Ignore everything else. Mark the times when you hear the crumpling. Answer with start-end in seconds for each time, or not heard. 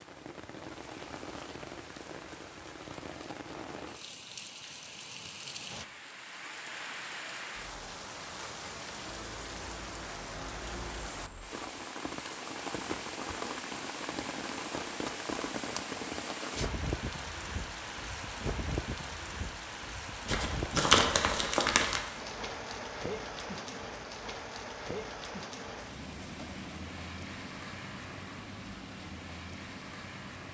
20.2-22.0.